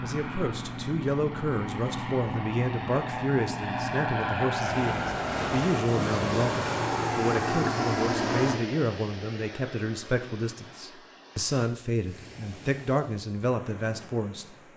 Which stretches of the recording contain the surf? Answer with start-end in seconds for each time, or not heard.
4.7-14.7.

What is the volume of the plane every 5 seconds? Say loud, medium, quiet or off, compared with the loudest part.
loud, loud, off.